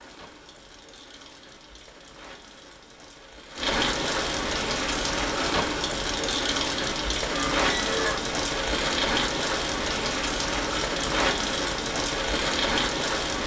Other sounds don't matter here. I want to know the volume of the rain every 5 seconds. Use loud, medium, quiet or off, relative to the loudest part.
medium, loud, loud.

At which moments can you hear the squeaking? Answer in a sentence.
You can hear the squeaking from 7.2 to 8.2 s.